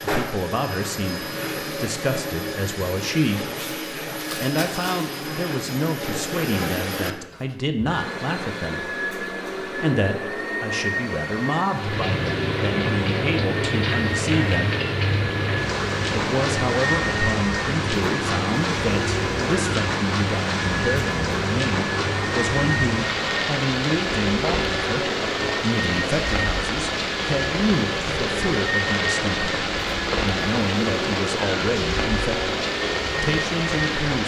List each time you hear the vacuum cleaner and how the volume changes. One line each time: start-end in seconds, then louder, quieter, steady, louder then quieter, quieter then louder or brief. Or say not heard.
0.0-34.0 steady.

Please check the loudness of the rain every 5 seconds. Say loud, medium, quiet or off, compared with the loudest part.
off, off, loud, loud, loud, loud, loud.